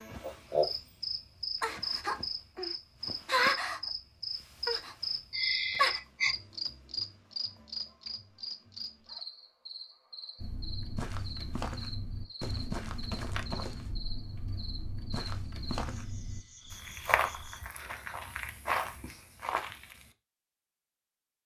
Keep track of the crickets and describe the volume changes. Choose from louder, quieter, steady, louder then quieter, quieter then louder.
quieter.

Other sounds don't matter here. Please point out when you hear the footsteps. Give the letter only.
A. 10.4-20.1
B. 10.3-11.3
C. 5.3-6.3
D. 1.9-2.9
A.